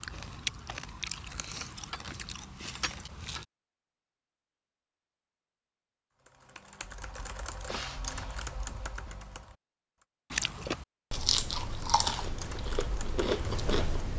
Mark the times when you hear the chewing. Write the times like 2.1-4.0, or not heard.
0.0-3.5, 10.3-14.1.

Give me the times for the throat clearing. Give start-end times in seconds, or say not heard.
not heard.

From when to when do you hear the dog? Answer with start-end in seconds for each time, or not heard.
not heard.